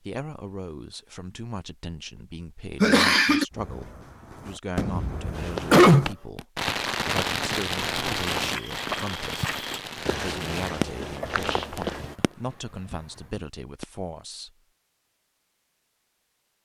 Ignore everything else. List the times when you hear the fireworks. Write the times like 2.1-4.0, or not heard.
3.5-11.0, 12.2-12.7.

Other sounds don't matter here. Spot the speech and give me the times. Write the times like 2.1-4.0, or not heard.
0.0-14.6.